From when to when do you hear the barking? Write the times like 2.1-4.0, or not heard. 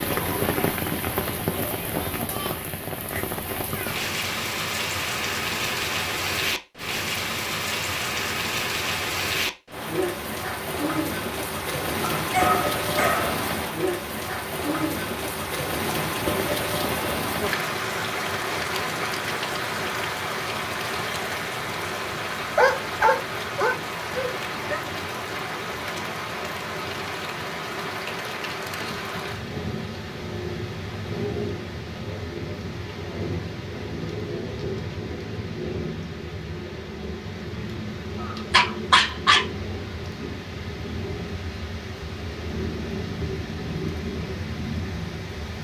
12.2-13.3, 22.6-24.8, 38.2-39.4.